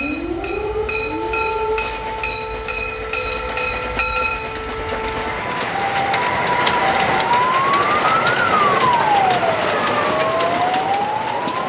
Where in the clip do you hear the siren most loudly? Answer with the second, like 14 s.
9 s.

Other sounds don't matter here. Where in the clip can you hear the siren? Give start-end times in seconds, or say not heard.
0.0-11.6.